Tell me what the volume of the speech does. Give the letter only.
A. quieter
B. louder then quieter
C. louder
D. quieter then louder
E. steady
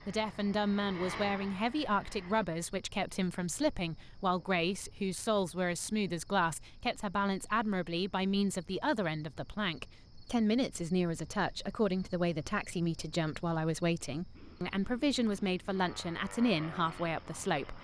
E.